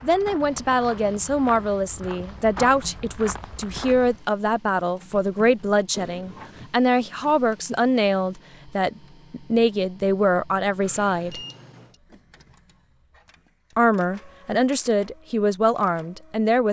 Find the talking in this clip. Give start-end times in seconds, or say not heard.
0.0-11.4, 13.8-16.6.